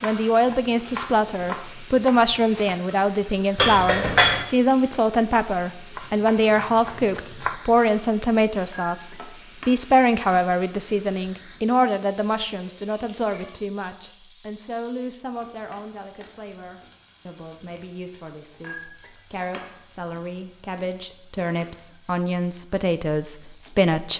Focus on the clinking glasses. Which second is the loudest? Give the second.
4 s.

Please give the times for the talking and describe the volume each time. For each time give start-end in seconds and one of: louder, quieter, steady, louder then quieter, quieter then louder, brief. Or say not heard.
0.0-24.1 quieter then louder.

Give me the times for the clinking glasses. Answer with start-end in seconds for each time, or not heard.
3.5-4.5, 8.7-9.8, 18.6-19.8.